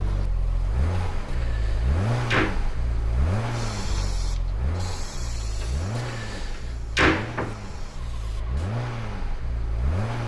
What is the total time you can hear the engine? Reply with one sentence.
You can hear the engine for 10 seconds altogether.